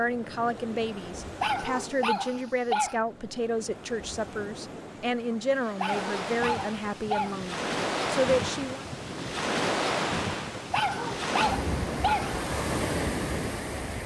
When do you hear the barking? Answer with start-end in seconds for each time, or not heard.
1.4-3.0, 5.8-7.4, 10.7-12.4.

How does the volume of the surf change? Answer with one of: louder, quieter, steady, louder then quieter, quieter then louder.
louder.